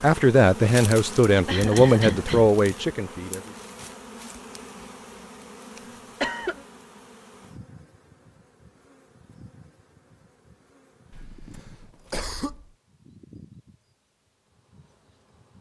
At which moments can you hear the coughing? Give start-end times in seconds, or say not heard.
1.4-2.5, 5.8-6.5, 11.1-12.7.